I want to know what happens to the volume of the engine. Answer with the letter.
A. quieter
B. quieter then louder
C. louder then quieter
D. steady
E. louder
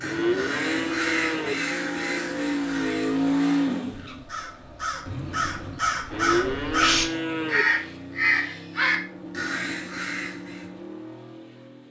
C.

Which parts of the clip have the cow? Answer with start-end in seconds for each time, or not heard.
0.0-1.6, 6.1-7.7.